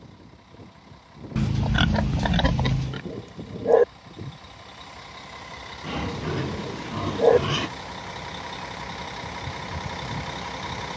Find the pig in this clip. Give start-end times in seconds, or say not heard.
1.4-3.0, 5.8-7.7.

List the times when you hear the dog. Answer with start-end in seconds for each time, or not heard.
3.1-3.9, 6.2-7.4.